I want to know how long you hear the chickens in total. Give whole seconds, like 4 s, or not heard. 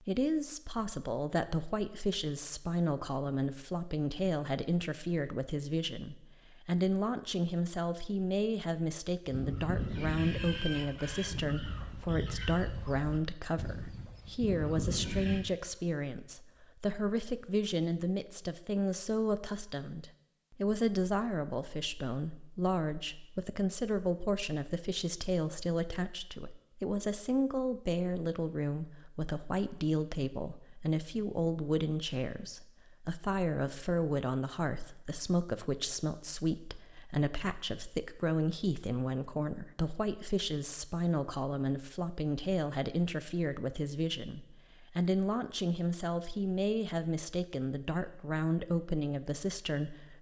6 s.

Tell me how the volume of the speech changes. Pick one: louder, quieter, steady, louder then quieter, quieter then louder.
steady.